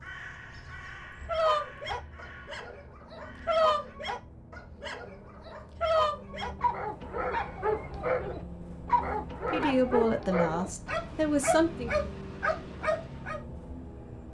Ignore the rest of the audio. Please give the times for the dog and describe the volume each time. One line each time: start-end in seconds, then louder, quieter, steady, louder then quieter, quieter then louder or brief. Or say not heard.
1.2-13.4 steady.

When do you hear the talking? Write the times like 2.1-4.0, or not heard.
9.4-11.9.